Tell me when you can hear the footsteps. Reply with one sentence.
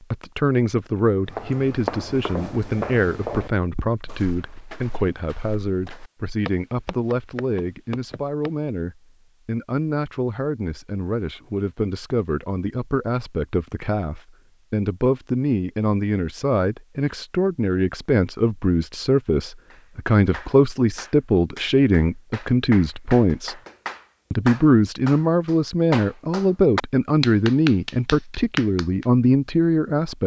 The footsteps can be heard from 1.2 to 8.5 s.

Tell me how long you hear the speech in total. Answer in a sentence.
The speech can be heard for 29 seconds in total.